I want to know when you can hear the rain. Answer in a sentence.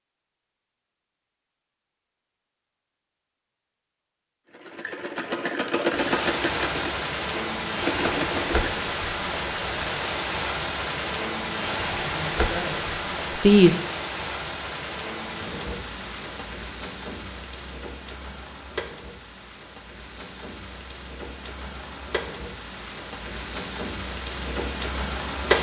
The rain can be heard from 5.8 to 25.5 s.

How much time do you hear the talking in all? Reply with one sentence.
You can hear the talking for 2 seconds altogether.